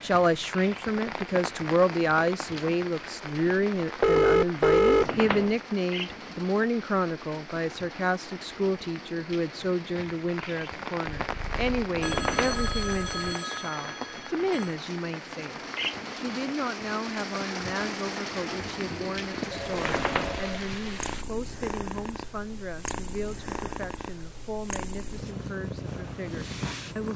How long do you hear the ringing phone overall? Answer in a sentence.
You can hear the ringing phone for 5 seconds altogether.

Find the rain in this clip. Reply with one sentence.
You can hear the rain from 0.0 to 21.2 s.